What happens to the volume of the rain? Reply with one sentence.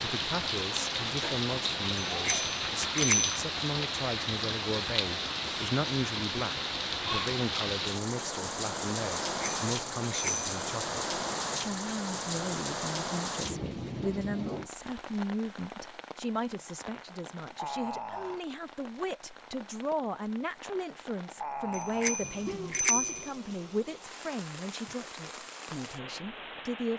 The volume of the rain goes down.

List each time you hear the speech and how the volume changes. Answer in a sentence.
The speech can be heard from 0.0 to 26.9 s, at a steady volume.